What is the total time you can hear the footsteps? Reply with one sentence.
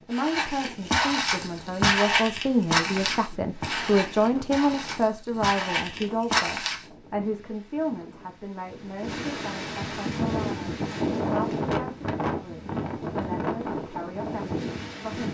The footsteps can be heard for 7 seconds in total.